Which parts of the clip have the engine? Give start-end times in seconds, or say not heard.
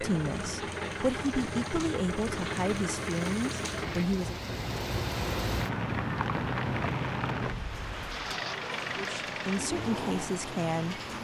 0.0-4.0, 8.1-11.1.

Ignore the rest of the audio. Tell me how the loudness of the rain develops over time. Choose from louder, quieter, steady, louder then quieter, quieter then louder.
louder then quieter.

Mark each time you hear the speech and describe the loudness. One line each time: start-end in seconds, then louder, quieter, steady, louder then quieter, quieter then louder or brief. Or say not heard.
0.0-4.3 steady
8.9-11.0 brief.